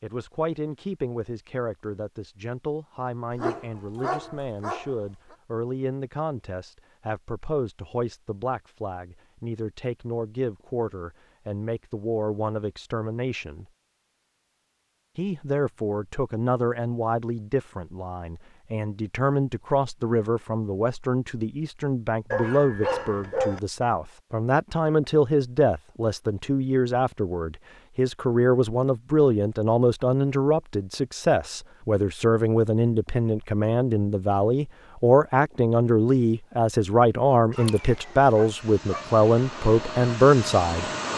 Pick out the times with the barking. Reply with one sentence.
The barking can be heard from 3.3 to 5.3 s, from 22.3 to 23.6 s and from 37.5 to 39.0 s.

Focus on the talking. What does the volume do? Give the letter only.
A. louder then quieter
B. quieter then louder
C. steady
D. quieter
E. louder
E.